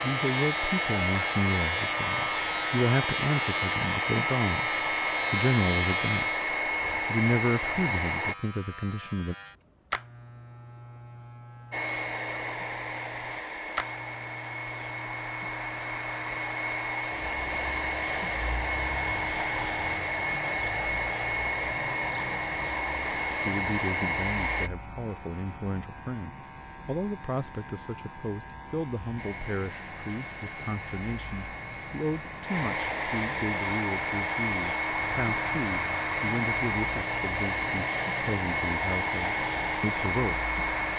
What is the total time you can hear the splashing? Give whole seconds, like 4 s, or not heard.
not heard.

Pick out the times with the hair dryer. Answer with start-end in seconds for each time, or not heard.
0.0-8.3, 11.7-24.7, 29.1-40.9.